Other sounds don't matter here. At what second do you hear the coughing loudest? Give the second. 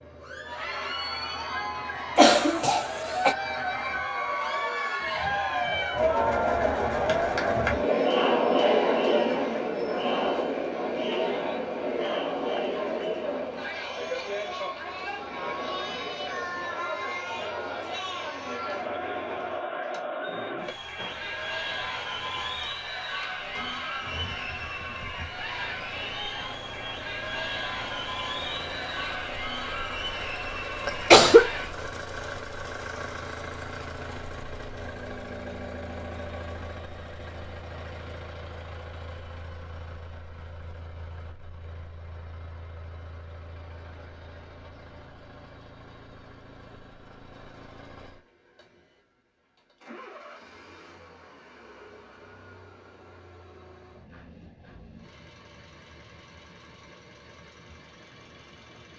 31 s.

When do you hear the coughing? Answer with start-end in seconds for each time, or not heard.
2.1-3.4, 30.9-31.5.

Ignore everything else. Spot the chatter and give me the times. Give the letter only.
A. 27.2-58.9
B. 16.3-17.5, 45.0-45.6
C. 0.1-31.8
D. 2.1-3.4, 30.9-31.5
C.